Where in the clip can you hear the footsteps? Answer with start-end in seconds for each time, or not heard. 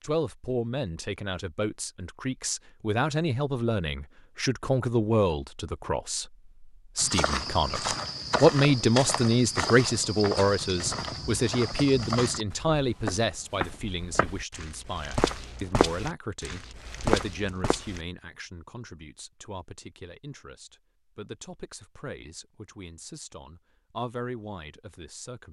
7.0-18.0.